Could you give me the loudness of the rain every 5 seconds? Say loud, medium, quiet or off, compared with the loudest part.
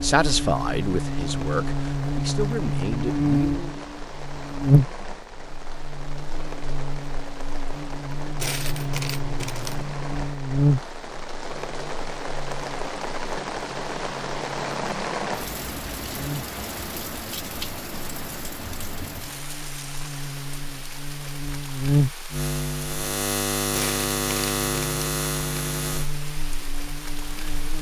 medium, medium, loud, loud, medium, medium.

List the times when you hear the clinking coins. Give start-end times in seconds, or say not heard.
8.3-9.8, 23.7-25.1.